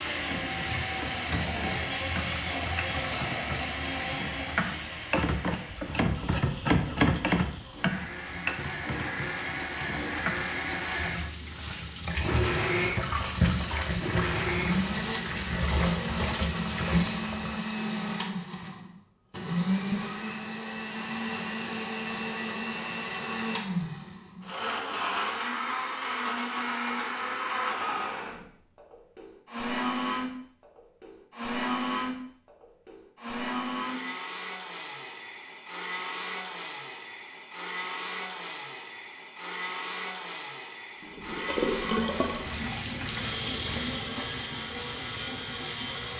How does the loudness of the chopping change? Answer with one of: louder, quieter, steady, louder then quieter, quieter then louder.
louder then quieter.